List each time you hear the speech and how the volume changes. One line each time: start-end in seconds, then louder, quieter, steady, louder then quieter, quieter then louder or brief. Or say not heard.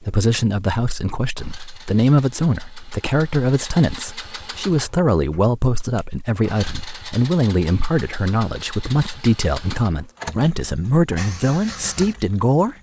0.0-12.7 steady.